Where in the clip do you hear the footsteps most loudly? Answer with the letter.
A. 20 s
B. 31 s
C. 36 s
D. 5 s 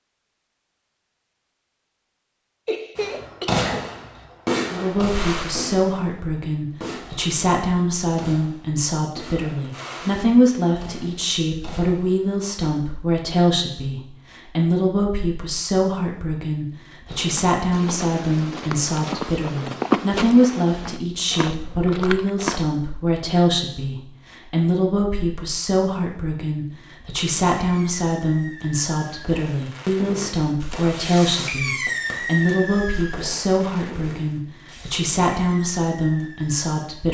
A.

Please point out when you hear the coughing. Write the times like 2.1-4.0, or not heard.
2.6-3.9.